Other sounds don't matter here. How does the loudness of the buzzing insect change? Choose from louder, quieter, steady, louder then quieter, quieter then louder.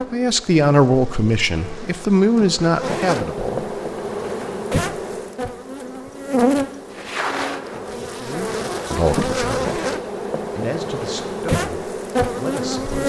louder.